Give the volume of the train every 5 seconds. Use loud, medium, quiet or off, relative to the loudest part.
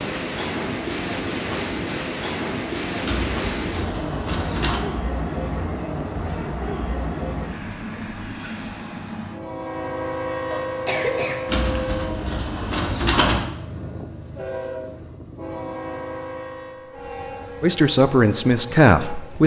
loud, loud, loud, medium.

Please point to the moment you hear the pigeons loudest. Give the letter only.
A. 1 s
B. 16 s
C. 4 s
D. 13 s
D.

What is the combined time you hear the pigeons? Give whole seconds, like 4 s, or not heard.
4 s.